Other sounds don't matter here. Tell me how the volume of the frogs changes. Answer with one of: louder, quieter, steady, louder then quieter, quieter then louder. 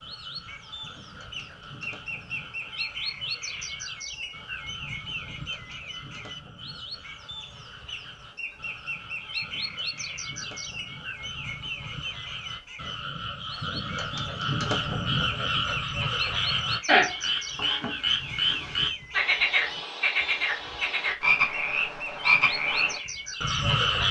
louder.